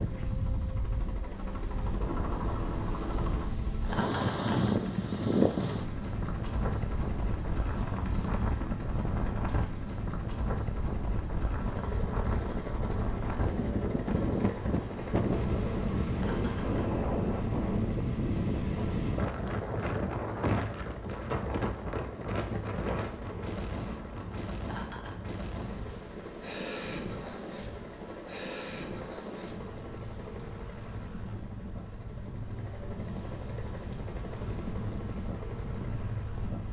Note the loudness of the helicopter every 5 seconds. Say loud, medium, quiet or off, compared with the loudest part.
loud, loud, loud, loud, medium, medium, medium, medium.